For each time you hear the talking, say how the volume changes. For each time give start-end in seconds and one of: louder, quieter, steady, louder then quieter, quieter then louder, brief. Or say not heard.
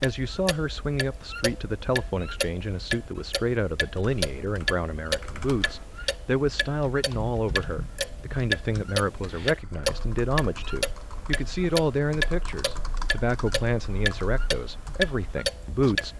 0.0-16.1 steady.